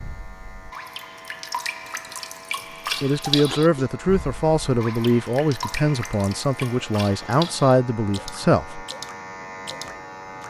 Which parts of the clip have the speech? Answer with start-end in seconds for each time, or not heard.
3.0-8.8.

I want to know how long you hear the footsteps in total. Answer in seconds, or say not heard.
not heard.